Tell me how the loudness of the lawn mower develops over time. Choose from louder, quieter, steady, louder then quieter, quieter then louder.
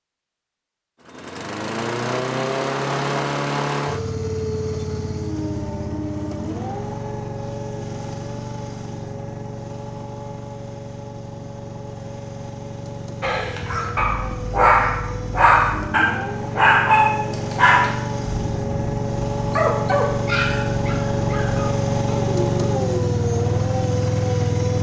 quieter then louder.